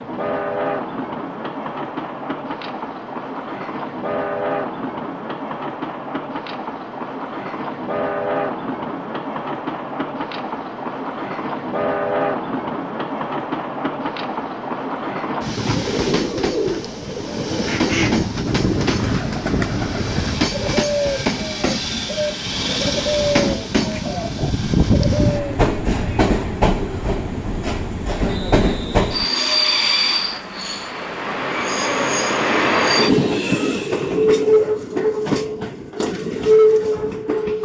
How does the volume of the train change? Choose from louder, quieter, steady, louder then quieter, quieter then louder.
louder.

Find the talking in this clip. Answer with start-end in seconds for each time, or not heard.
not heard.